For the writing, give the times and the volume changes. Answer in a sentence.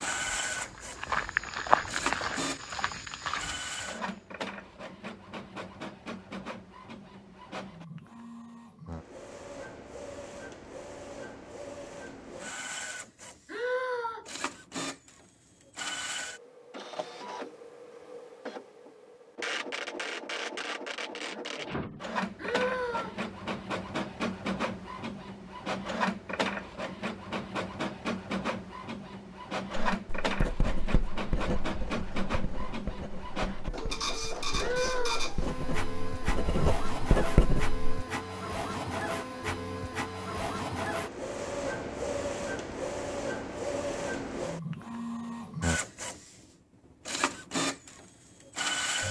The writing can be heard from 29.9 to 37.8 s, getting quieter then louder.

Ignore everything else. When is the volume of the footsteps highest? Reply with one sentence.
The volume of the footsteps peaks at 2 seconds.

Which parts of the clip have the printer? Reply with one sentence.
The printer can be heard from 0.0 to 49.0 s.